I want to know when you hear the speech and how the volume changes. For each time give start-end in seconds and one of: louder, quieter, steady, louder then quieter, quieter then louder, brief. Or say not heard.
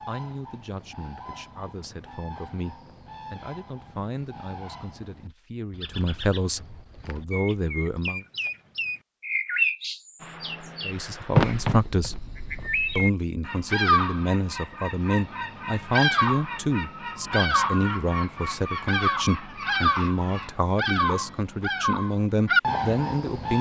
0.1-8.2 louder
10.8-12.2 brief
12.9-23.5 steady.